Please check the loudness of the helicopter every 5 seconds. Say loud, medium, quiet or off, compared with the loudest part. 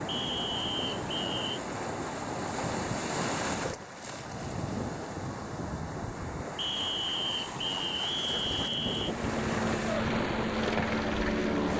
off, medium, loud.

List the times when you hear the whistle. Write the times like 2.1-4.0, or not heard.
0.1-1.6, 6.5-9.2.